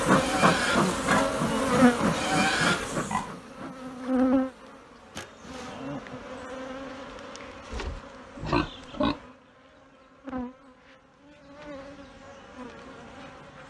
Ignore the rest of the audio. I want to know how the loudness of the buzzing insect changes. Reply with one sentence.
The volume of the buzzing insect goes down.